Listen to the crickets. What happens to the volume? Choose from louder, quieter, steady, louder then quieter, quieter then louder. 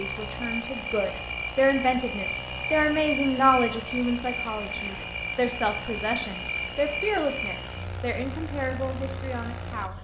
steady.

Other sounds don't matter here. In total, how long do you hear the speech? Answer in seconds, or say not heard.
10 s.